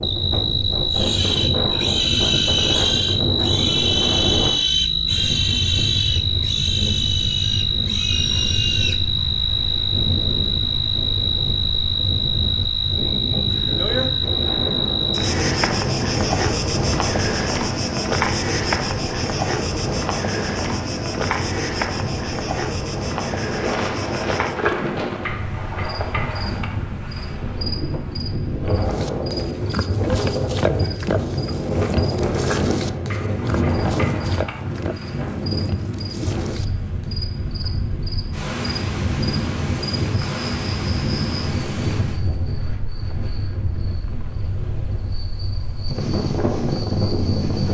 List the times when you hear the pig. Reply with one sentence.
The pig can be heard from 0.9 to 9.0 s and from 28.9 to 37.1 s.